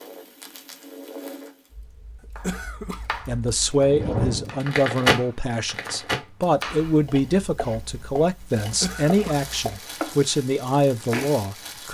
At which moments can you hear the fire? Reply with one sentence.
The fire can be heard from 0.0 to 11.8 s.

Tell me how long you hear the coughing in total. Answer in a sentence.
You can hear the coughing for 2 seconds altogether.